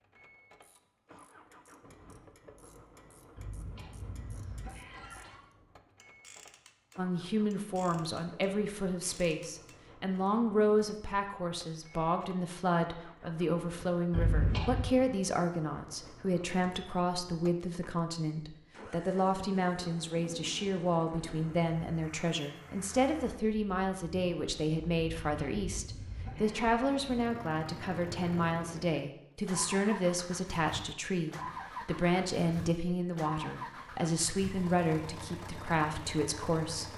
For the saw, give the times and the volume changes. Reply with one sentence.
You can't hear the saw here.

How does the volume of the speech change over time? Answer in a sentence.
The loudness of the speech stays about the same.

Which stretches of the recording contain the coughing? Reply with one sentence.
The coughing can be heard from 3.4 to 5.4 s, from 14.1 to 14.9 s and from 25.1 to 26.8 s.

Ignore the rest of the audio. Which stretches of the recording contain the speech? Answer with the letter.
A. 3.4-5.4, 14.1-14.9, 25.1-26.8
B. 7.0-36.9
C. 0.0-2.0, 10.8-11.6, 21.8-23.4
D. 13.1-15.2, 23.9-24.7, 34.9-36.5
B.